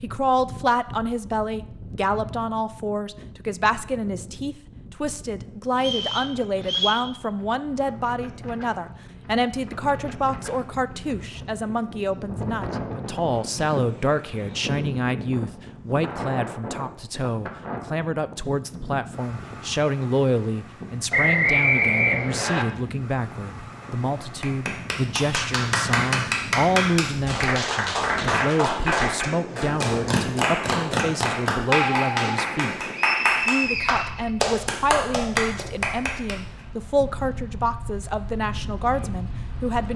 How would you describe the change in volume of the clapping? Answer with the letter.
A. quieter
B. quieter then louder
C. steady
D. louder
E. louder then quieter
C.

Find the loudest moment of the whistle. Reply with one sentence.
The volume of the whistle peaks at 22 seconds.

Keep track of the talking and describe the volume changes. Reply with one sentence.
The volume of the talking stays about the same.